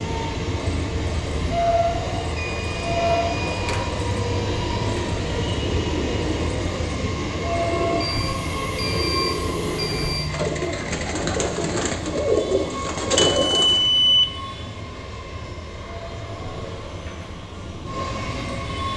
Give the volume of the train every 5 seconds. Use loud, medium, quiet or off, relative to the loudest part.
loud, loud, medium, medium.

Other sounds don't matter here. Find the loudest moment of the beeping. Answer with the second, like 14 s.
14 s.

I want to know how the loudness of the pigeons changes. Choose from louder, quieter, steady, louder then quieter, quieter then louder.
louder.